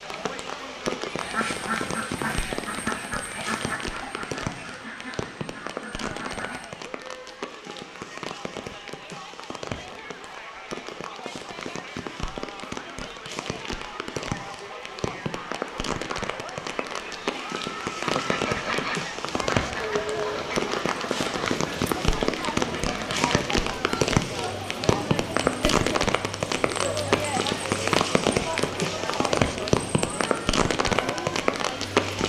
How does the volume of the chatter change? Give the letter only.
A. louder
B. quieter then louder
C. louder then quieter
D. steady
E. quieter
A.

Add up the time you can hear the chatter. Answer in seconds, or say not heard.
32 s.